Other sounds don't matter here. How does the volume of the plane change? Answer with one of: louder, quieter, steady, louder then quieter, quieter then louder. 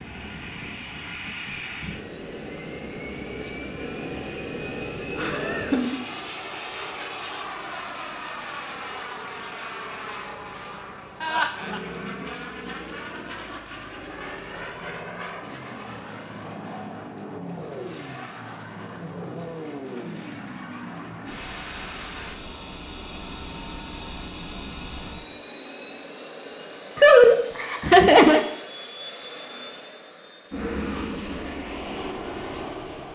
steady.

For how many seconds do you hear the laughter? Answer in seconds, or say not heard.
3 s.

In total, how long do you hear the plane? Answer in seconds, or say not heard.
33 s.